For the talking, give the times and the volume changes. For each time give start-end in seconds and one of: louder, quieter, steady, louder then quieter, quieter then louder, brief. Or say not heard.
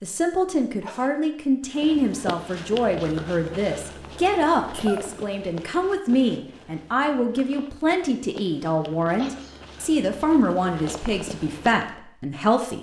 0.0-12.7 steady.